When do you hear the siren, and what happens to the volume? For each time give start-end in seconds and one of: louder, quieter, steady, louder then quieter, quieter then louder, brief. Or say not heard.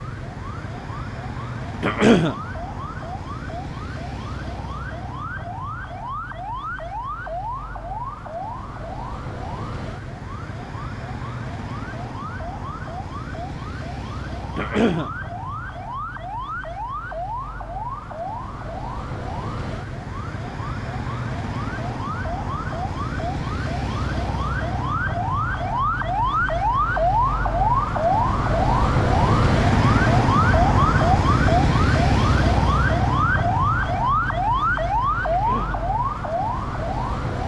0.0-37.4 louder.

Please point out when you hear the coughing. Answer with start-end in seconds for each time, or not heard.
1.8-2.4, 14.6-15.1, 35.2-35.8.